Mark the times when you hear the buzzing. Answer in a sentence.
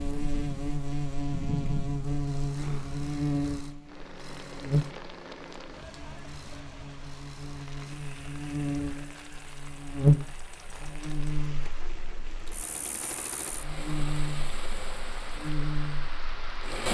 You can hear the buzzing from 0.0 to 16.6 s.